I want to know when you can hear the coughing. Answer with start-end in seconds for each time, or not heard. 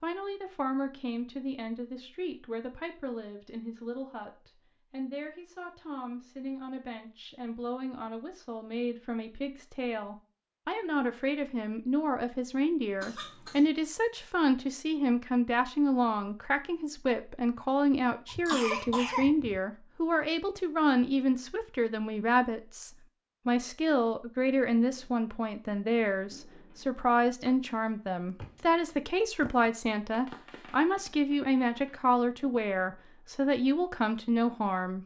13.0-13.7, 18.2-19.6.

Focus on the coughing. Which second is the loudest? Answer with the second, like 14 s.
19 s.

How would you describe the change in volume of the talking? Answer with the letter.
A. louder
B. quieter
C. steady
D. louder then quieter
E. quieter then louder
A.